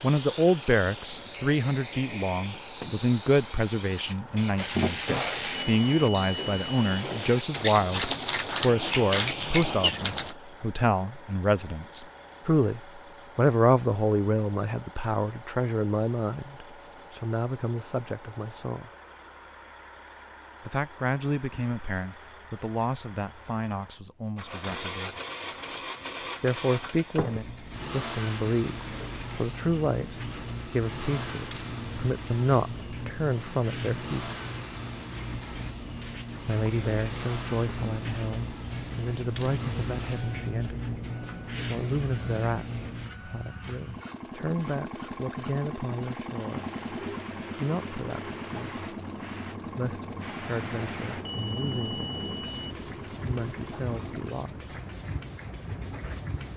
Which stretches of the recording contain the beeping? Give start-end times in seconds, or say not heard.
5.5-7.0, 51.2-52.8.